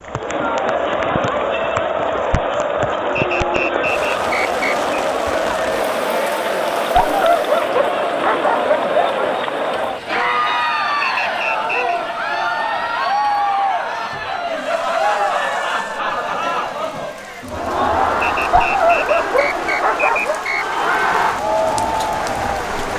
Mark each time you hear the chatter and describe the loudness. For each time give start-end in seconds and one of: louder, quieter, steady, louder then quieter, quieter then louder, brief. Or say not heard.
0.0-22.9 steady.